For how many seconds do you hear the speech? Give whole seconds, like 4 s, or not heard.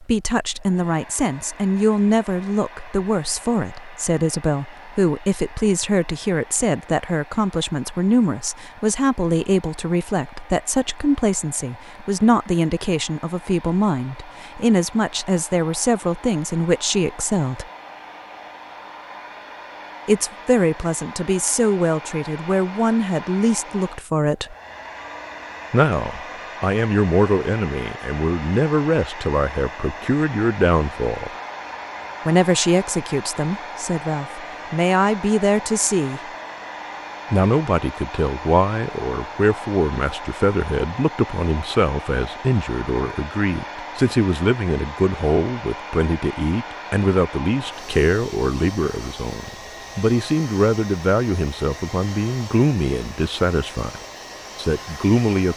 50 s.